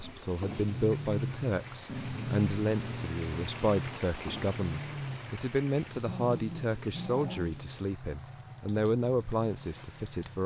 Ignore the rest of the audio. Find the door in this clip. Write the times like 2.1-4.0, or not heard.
not heard.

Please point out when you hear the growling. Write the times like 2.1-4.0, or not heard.
1.9-3.1, 5.9-7.5.